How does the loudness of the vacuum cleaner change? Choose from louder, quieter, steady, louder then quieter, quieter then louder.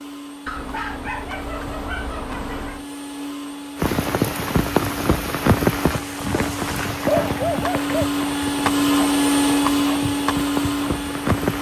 louder.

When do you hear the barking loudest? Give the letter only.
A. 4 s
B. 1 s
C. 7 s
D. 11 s
C.